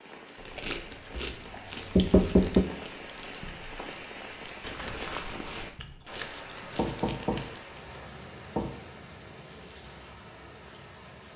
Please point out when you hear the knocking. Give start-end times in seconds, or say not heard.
1.1-2.6, 6.8-8.8.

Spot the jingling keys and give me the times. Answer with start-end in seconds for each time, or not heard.
4.6-5.8.